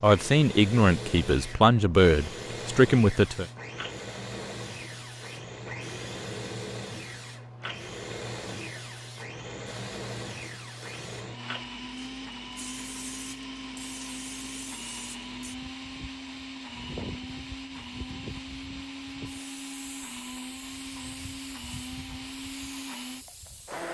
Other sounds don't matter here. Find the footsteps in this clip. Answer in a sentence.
You can't hear the footsteps here.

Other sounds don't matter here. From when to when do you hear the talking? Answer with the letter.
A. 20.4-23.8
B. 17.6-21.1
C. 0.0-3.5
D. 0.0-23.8
C.